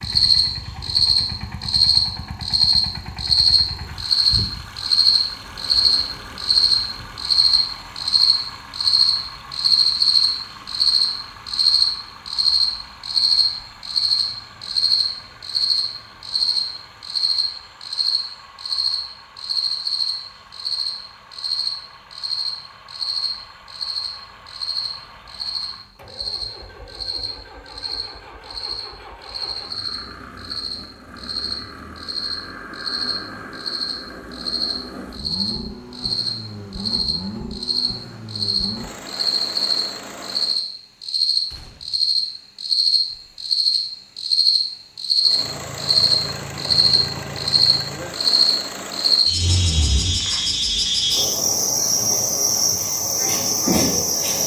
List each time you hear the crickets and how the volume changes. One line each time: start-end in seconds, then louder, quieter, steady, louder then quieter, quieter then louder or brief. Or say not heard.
0.0-54.4 quieter then louder.